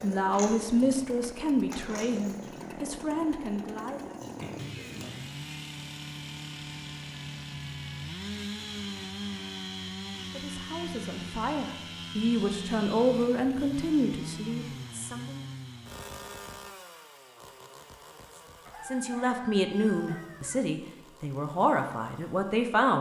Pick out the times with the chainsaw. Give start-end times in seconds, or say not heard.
0.0-22.6.